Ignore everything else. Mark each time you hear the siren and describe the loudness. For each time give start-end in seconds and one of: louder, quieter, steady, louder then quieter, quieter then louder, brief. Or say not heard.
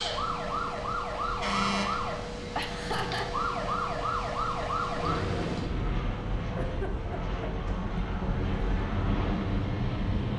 0.0-10.1 quieter.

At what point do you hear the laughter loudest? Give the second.
3 s.